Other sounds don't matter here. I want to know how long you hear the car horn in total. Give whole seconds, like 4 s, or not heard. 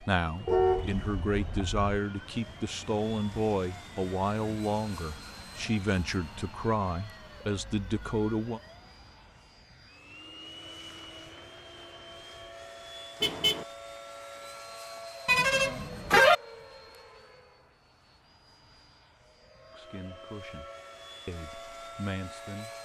3 s.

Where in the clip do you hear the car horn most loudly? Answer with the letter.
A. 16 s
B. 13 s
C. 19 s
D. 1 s
A.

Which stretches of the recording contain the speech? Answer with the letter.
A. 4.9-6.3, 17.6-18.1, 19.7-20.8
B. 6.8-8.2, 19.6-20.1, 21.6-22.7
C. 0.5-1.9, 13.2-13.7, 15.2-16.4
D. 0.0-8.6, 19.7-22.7
D.